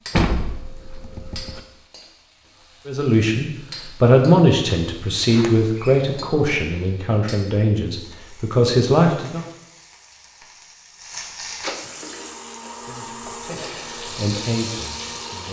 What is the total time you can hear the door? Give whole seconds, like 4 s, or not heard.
3 s.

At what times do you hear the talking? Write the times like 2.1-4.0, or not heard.
2.9-9.4, 12.8-15.4.